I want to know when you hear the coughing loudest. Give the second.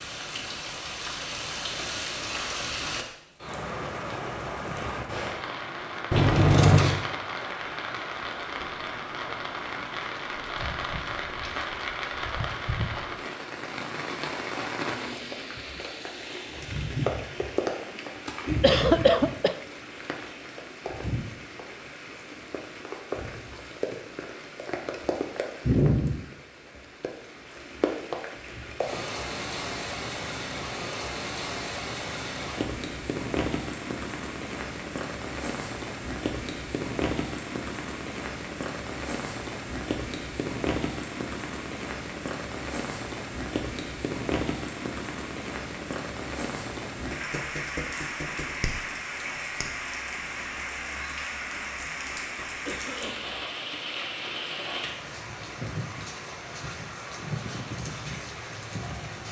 19 s.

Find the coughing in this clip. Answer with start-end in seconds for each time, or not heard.
18.6-19.6, 52.5-53.4.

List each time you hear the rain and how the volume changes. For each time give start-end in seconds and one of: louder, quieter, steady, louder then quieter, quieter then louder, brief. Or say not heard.
0.0-59.2 steady.